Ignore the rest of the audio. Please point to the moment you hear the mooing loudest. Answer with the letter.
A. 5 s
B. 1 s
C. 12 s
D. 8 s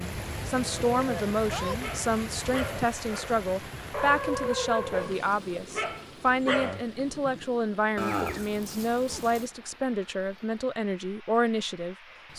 D.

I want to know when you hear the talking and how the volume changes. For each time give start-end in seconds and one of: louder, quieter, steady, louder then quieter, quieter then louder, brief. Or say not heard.
0.0-12.3 steady.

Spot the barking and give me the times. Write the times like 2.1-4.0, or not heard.
1.8-7.5.